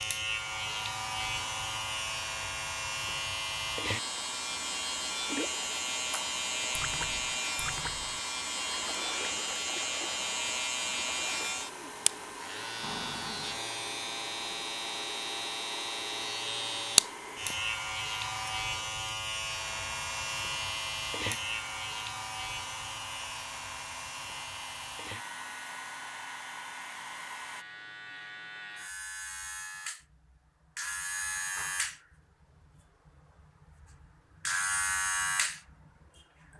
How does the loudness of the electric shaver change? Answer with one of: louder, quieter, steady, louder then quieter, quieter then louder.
quieter then louder.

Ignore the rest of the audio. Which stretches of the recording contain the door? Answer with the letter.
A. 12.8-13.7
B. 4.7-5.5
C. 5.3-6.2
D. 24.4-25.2
A.